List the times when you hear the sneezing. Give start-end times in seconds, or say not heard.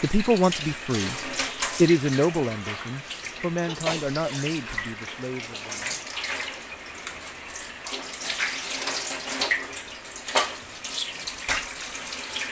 3.6-4.4.